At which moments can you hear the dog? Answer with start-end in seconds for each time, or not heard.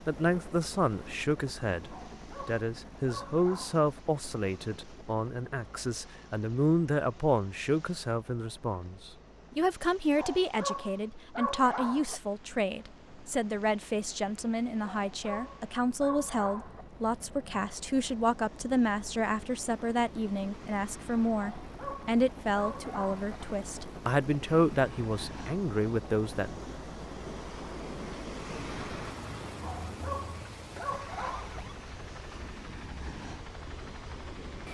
1.9-3.9, 10.2-12.2, 14.8-16.9, 21.4-23.2, 29.6-31.6.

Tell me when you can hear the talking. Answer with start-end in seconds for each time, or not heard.
0.1-26.6.